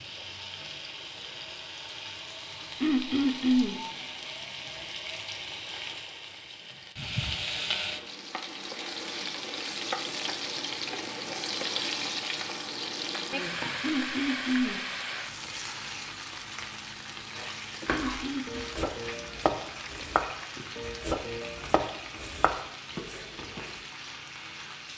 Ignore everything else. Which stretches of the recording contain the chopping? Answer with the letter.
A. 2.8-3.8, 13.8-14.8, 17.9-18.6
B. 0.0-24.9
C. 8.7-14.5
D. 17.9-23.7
D.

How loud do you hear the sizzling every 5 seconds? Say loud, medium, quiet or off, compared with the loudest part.
medium, loud, loud, medium, medium.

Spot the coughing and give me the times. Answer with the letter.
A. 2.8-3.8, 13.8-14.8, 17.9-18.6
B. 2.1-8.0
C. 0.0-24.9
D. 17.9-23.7
A.